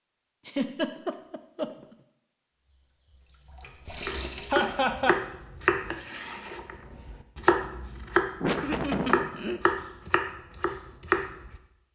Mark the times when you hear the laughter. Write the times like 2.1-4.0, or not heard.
0.5-1.9, 4.5-5.2, 8.4-9.6.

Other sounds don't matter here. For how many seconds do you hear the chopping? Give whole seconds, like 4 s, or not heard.
8 s.